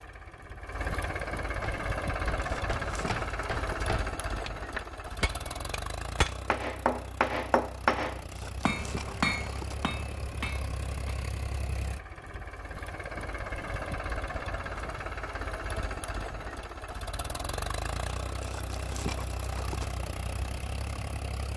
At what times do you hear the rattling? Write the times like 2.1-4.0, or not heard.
2.4-4.0, 8.3-9.8, 18.4-19.9.